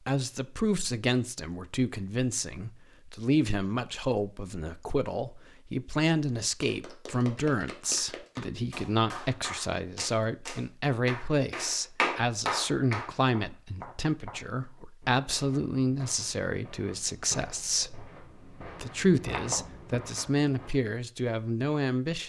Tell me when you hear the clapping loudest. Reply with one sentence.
The volume of the clapping peaks at 12 seconds.